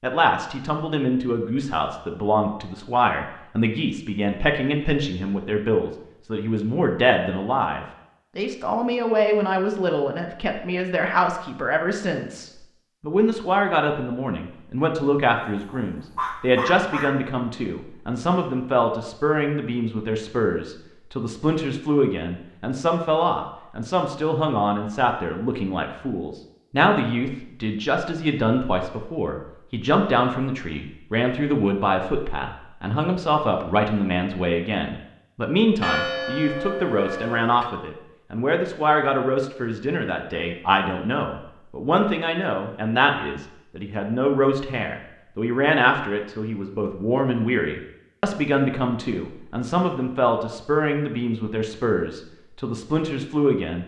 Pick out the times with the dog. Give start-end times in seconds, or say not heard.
15.4-17.1.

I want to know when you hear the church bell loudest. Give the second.
36 s.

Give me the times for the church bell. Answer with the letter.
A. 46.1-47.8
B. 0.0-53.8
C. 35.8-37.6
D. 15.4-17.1
C.